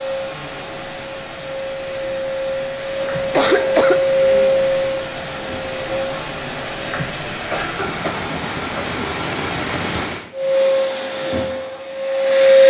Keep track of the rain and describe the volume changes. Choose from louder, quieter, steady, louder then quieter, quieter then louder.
louder.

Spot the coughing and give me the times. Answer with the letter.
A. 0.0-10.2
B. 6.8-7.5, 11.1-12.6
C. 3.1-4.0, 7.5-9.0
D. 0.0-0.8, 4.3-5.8
C.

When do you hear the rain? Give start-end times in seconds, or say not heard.
0.0-10.2.